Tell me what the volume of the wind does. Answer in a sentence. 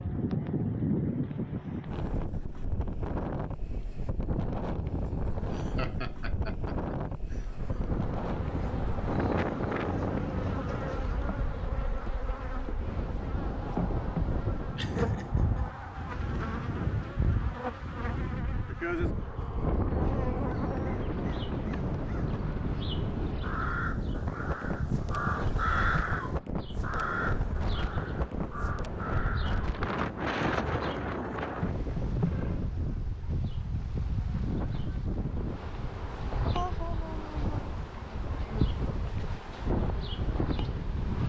The loudness of the wind stays about the same.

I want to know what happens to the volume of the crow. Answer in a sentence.
The volume of the crow goes up, then down.